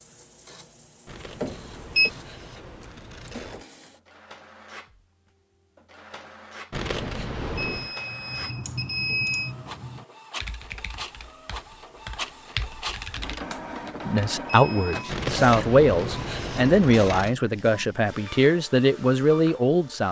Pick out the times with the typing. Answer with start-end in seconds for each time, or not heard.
8.0-14.4.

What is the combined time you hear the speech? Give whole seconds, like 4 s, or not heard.
6 s.